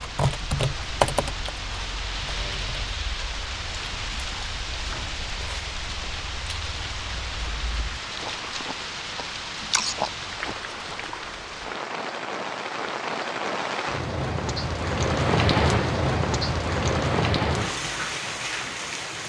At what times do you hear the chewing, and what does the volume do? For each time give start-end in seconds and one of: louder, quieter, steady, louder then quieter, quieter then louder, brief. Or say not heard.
0.2-11.3 louder.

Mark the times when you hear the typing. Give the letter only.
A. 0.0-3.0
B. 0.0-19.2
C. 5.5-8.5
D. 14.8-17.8
A.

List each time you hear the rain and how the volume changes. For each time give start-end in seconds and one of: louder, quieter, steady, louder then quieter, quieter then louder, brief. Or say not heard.
0.0-19.2 louder.